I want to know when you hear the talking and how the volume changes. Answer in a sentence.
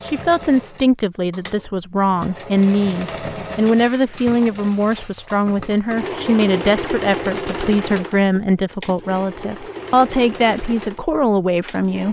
The talking can be heard from 0.0 to 12.0 s, at a steady volume.